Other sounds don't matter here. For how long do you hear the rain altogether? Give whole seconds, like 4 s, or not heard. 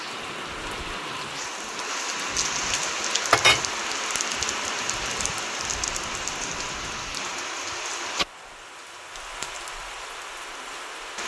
11 s.